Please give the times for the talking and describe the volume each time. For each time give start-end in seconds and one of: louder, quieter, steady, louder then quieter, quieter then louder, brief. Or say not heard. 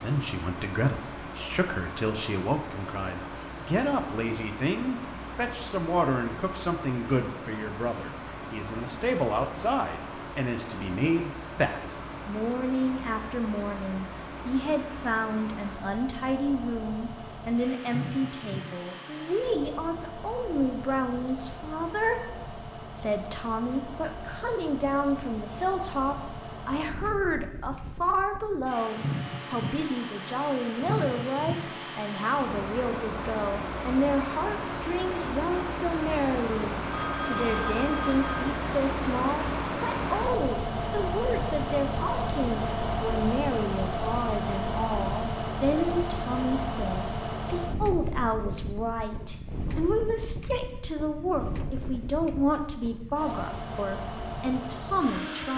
0.0-55.5 steady.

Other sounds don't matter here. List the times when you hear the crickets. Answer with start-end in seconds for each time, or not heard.
not heard.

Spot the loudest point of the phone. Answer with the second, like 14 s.
38 s.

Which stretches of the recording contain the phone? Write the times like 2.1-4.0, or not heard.
36.9-38.9.